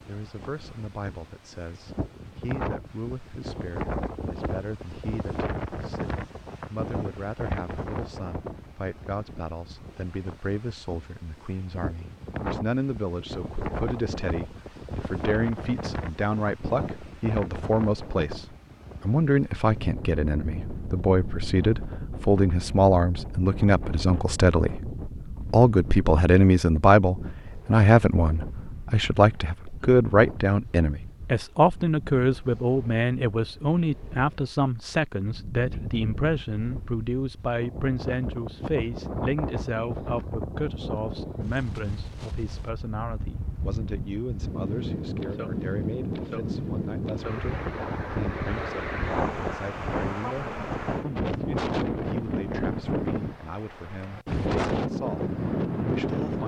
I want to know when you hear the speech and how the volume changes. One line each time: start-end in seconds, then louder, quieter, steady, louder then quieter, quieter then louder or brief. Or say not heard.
0.1-56.4 louder then quieter.